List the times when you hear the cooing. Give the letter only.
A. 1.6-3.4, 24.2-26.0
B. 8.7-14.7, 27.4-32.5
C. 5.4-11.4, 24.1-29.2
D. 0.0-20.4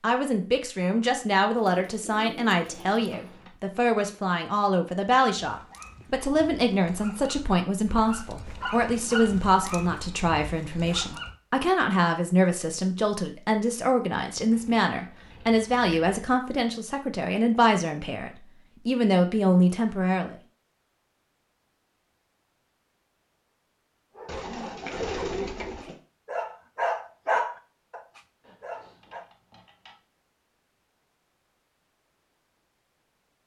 A.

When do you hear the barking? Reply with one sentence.
You can hear the barking from 5.4 to 11.4 s and from 24.1 to 29.2 s.